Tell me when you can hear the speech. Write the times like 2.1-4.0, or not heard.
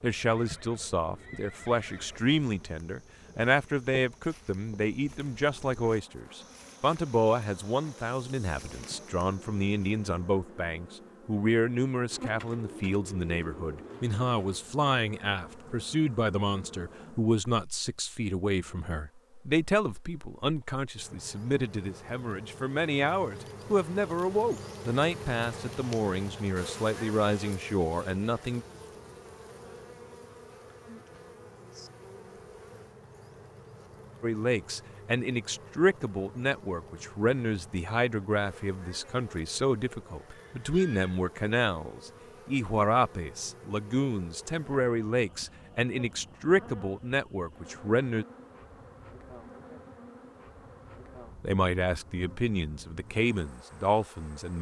0.0-28.6, 34.2-48.2, 51.4-54.5.